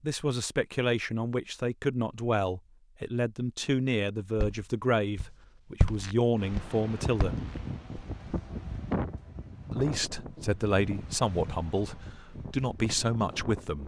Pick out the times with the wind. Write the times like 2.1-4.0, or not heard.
6.3-13.8.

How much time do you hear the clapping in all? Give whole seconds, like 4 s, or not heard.
not heard.